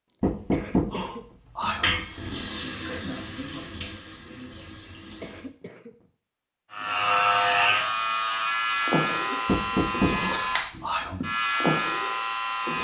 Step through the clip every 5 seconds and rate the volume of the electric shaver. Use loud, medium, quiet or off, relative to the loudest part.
off, loud, loud.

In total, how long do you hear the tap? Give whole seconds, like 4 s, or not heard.
4 s.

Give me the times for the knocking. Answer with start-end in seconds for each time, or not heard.
0.2-2.0, 9.4-11.2.